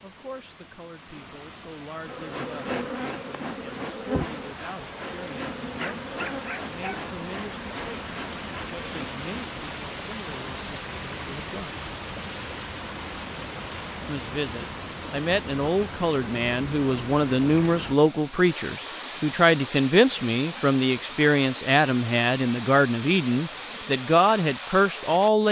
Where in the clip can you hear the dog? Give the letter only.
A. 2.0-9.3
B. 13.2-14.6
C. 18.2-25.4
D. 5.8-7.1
D.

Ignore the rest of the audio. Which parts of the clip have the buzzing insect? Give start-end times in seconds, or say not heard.
2.0-9.3.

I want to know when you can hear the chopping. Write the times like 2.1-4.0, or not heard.
not heard.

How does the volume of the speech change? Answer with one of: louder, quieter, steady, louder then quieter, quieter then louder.
louder.